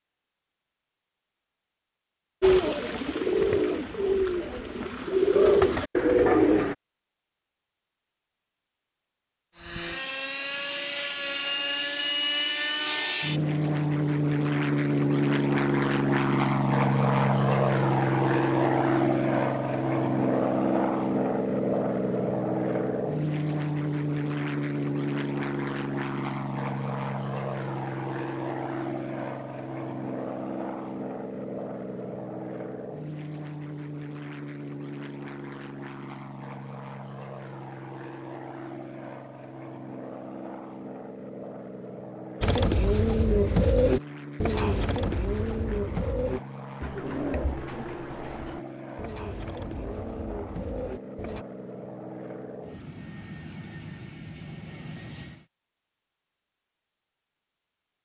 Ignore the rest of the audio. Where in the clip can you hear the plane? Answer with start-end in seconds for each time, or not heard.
9.6-55.5.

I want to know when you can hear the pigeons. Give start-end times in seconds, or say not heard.
2.4-6.8, 42.4-51.5.